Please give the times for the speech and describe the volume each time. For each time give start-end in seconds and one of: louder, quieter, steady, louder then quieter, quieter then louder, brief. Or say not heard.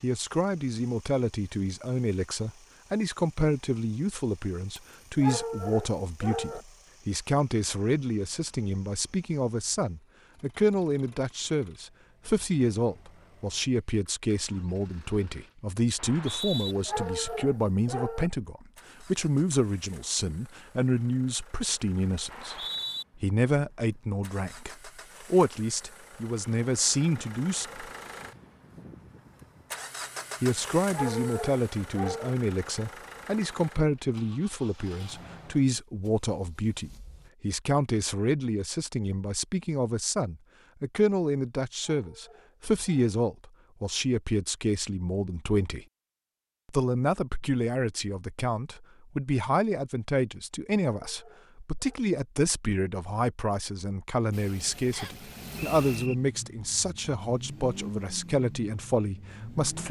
0.0-27.9 steady
30.4-45.9 steady
46.7-59.8 steady.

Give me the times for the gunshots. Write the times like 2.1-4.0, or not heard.
not heard.